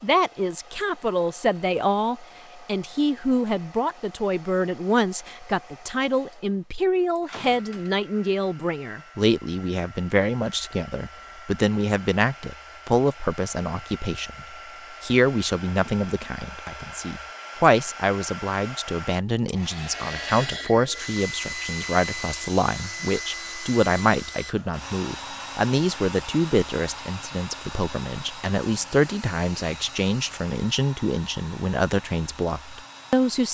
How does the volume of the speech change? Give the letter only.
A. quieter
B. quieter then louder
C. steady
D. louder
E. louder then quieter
C.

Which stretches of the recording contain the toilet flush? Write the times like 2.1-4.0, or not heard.
not heard.